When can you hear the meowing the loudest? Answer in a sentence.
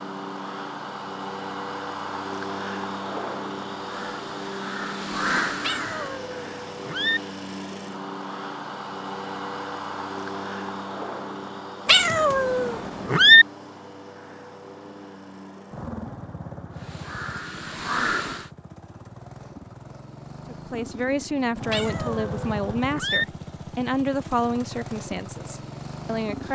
The loudest moment of the meowing is at 13 seconds.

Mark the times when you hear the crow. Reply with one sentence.
The crow can be heard from 3.8 to 6.2 s and from 16.7 to 18.5 s.